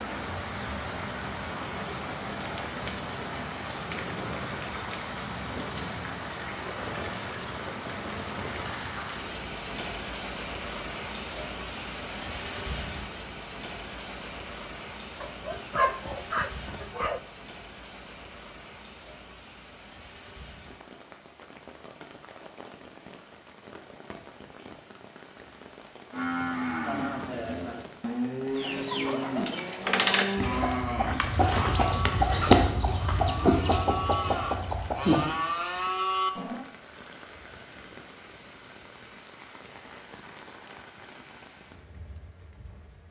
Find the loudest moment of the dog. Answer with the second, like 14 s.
16 s.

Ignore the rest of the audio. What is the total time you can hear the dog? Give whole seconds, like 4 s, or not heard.
2 s.